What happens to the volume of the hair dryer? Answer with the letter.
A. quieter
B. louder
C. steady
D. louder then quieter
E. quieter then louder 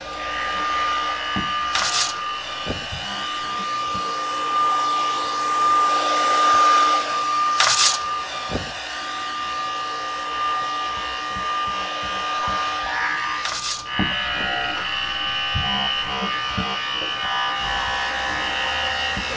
D.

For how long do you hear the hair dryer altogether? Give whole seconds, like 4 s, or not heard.
19 s.